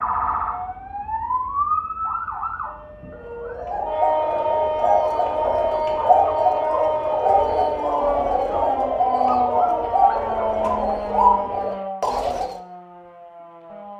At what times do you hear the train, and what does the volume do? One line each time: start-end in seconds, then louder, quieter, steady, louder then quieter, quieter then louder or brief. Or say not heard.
not heard.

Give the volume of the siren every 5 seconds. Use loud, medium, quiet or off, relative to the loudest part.
loud, loud, medium.